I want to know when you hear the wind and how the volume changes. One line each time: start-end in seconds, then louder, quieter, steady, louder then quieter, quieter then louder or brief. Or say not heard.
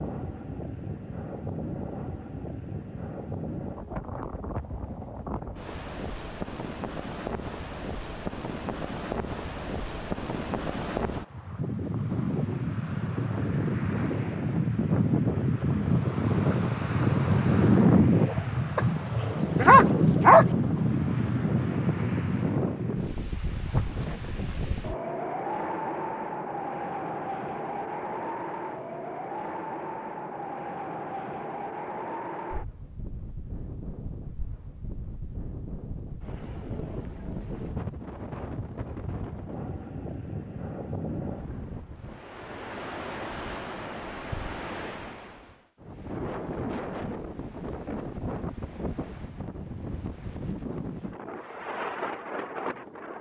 0.0-53.1 louder then quieter.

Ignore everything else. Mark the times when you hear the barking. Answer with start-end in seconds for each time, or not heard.
19.6-20.4.